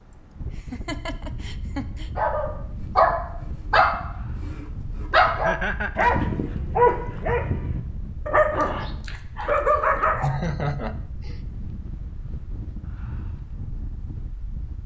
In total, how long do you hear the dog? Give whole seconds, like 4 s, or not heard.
8 s.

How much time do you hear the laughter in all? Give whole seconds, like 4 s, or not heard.
4 s.